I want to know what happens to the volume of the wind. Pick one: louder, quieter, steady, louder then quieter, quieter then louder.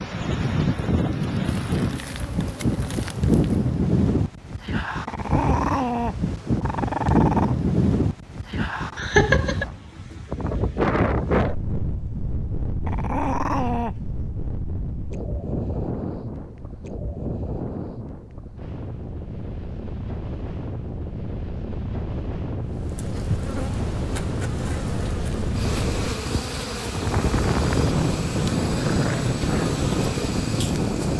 quieter then louder.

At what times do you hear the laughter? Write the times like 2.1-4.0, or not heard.
8.9-9.7.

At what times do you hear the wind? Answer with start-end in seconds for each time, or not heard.
0.0-31.1.